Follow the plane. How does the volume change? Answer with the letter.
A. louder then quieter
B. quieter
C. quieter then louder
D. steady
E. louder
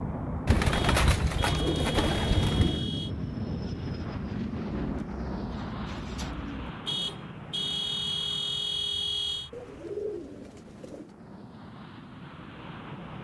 B.